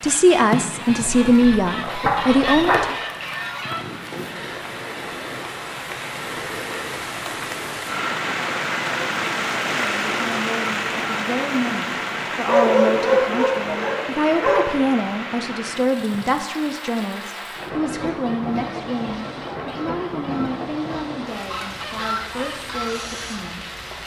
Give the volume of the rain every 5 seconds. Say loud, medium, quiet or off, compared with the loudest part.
medium, loud, loud, medium, medium.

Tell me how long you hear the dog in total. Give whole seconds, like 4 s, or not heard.
4 s.